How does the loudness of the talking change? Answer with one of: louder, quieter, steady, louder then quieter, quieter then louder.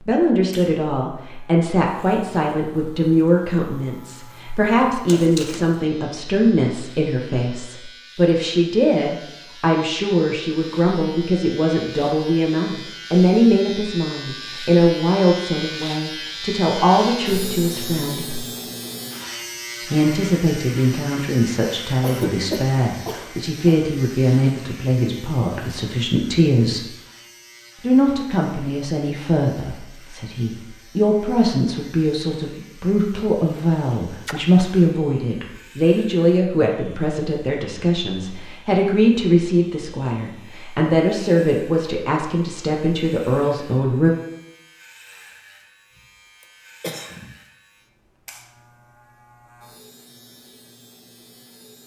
steady.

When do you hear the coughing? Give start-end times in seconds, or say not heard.
5.0-5.6, 22.0-23.8, 46.4-47.4.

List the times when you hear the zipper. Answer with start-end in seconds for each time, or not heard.
not heard.